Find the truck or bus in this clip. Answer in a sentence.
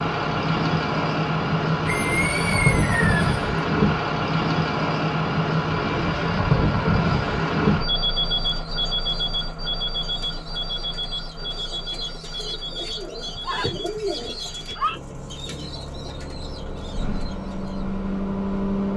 The truck or bus can be heard from 0.0 to 18.9 s.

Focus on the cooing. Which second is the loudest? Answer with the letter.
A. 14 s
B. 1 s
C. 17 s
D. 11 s
A.